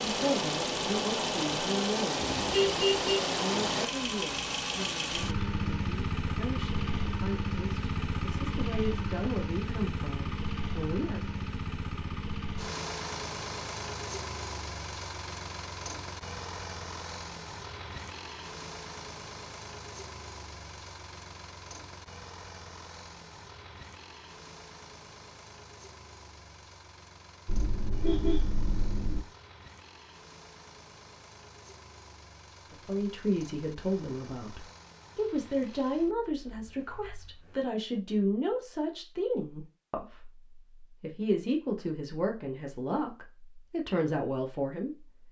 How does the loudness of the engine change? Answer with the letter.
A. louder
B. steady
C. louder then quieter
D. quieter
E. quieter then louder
D.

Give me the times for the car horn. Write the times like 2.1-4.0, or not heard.
2.2-3.2, 27.4-29.2.